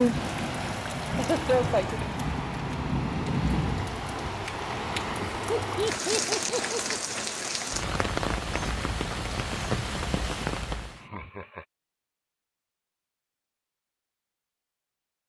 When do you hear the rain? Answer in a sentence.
The rain can be heard from 0.0 to 11.1 s.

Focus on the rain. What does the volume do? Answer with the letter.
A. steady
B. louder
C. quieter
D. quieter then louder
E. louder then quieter
A.